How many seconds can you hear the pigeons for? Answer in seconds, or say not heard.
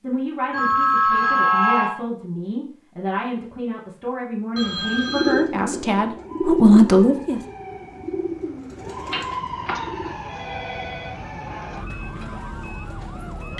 5 s.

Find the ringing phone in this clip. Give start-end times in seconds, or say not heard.
0.5-1.9, 4.5-5.5, 9.1-11.1.